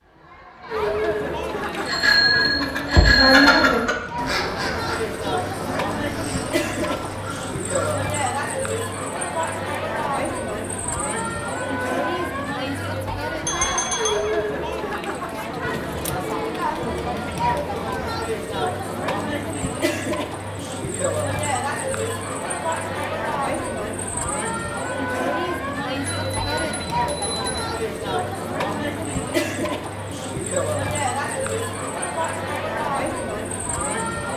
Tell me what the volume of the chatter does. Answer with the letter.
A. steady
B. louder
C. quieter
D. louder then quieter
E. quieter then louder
A.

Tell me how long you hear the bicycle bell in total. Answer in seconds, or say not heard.
4 s.